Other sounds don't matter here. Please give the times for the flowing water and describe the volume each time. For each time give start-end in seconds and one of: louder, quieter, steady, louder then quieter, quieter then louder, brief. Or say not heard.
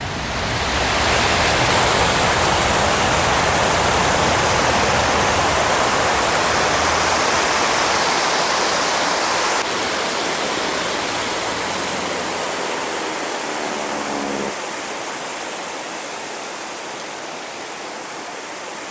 0.0-18.8 quieter.